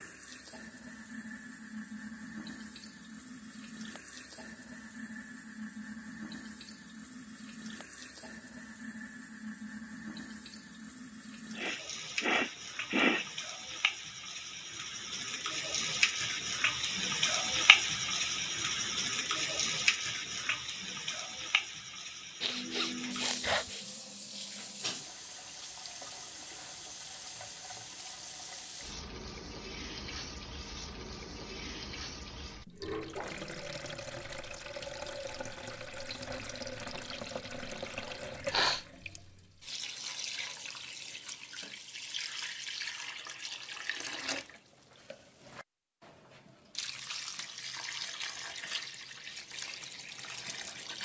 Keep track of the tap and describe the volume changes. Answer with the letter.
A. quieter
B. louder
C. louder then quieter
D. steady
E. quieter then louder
C.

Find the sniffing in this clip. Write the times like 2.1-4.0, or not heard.
11.6-13.2, 22.4-23.9, 38.0-38.9.